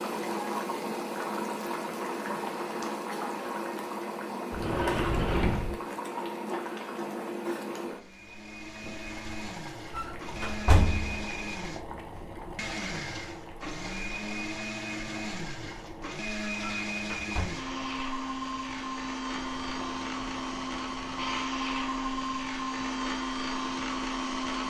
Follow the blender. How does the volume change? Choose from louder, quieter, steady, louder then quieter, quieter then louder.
louder.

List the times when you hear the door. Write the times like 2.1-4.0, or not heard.
4.5-5.8, 9.9-11.2, 16.6-17.6.